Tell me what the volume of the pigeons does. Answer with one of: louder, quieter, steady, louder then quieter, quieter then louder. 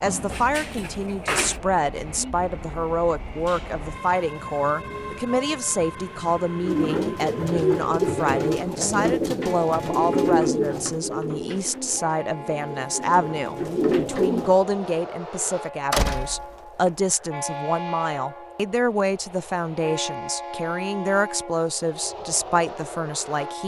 quieter then louder.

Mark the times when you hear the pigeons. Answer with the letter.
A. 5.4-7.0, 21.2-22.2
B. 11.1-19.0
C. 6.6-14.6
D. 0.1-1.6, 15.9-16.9
C.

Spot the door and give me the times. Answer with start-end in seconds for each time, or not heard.
0.1-1.6, 15.9-16.9.